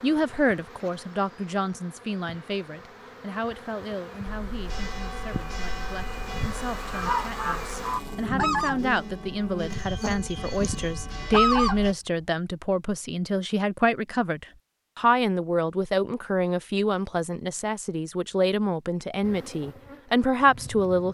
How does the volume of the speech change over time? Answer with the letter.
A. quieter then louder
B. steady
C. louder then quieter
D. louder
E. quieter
A.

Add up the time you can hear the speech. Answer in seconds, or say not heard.
21 s.